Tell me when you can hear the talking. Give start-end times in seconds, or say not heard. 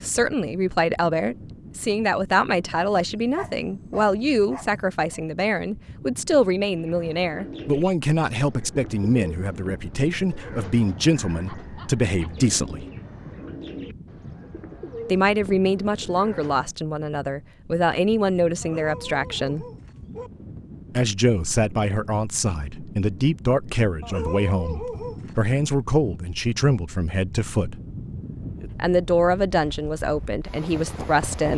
0.0-12.8, 15.1-19.6, 20.9-27.8, 28.8-31.5.